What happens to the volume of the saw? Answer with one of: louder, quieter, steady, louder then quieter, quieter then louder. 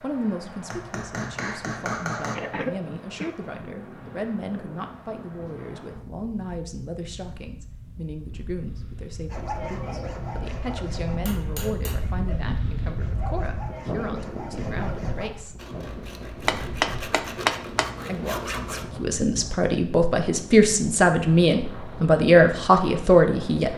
quieter then louder.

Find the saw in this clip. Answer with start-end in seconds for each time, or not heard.
9.3-18.9.